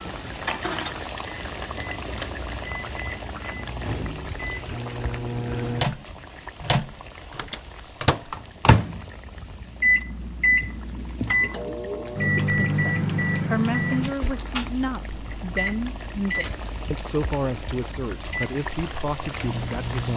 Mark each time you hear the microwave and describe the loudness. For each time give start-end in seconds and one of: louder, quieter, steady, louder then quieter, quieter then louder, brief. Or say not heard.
0.5-20.1 louder then quieter.